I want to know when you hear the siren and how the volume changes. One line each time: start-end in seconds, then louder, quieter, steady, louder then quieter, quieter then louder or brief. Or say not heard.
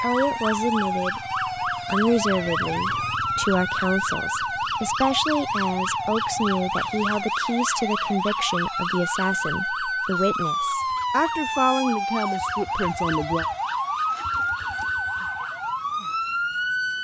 0.0-16.9 steady.